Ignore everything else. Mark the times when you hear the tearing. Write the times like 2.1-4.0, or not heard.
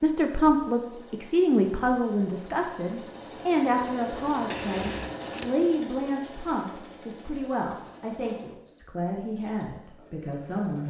4.5-5.5.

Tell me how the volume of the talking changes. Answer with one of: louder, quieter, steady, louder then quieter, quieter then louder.
quieter.